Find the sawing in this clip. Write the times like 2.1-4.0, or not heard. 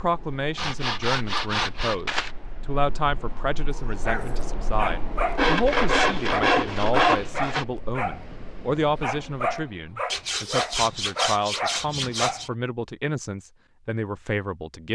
0.6-2.3, 5.3-7.7, 10.1-12.5.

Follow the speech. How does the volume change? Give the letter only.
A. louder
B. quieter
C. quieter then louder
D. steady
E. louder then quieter
D.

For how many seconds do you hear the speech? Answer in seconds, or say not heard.
15 s.